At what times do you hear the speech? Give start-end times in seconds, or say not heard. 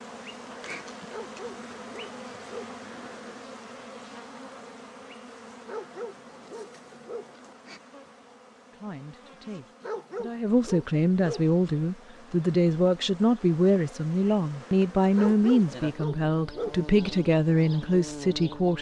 8.7-18.7.